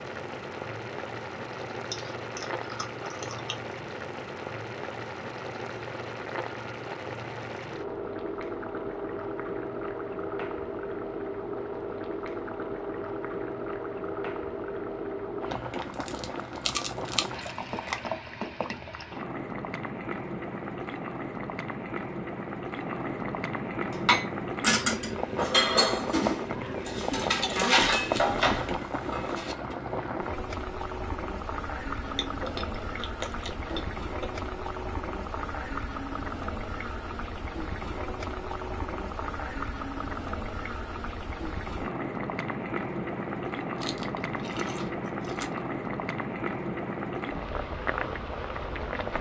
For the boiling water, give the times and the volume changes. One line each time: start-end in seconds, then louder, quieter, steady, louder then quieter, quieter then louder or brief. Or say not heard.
0.0-49.1 steady.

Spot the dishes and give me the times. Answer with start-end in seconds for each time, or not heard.
23.9-29.8.